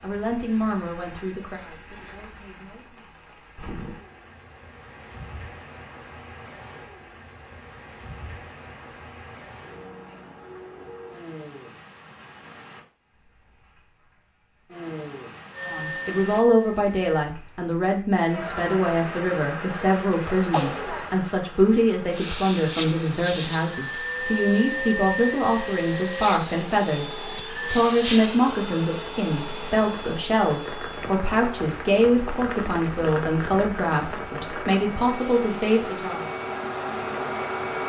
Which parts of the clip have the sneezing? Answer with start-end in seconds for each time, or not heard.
20.5-21.2.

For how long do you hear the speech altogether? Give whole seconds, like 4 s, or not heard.
24 s.